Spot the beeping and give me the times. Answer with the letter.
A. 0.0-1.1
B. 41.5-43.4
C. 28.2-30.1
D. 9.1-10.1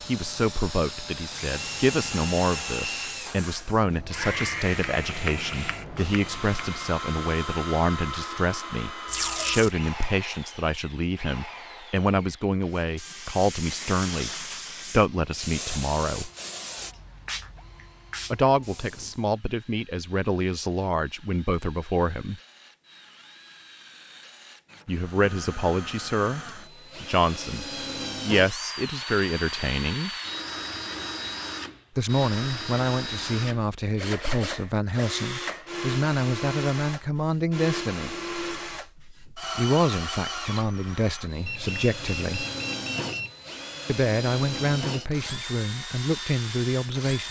B.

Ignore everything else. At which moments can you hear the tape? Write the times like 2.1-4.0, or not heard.
9.1-10.1.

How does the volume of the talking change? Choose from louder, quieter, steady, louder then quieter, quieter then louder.
steady.